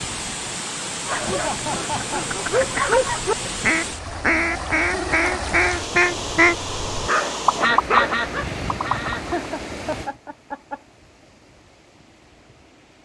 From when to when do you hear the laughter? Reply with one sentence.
You can hear the laughter from 1.1 to 2.3 s, from 4.7 to 5.5 s and from 9.3 to 10.8 s.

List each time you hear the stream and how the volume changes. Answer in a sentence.
You can hear the stream from 0.0 to 12.9 s, getting quieter.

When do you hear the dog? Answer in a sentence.
You can hear the dog from 1.1 to 3.5 s and from 7.0 to 8.8 s.